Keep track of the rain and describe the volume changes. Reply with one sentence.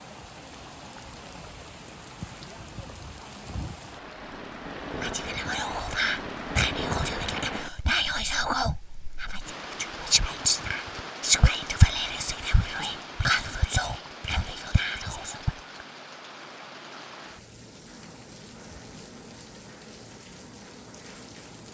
The volume of the rain goes up, then down.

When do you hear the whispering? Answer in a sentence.
The whispering can be heard from 5.0 to 15.6 s.